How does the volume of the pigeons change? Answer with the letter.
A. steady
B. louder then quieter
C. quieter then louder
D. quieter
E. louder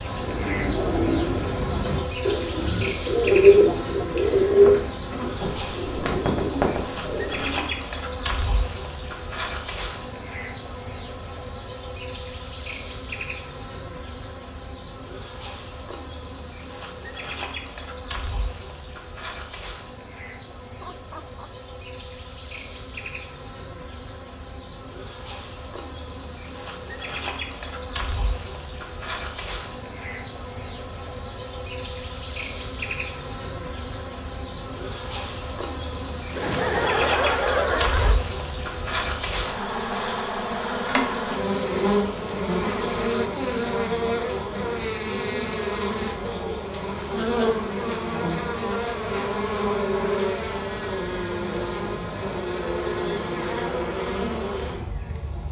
B.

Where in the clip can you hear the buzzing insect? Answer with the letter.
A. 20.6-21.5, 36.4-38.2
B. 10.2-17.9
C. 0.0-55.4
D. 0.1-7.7
C.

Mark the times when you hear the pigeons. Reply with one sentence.
The pigeons can be heard from 0.1 to 7.7 s.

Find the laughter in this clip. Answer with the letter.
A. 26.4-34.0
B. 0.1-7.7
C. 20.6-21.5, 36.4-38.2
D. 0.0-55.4
C.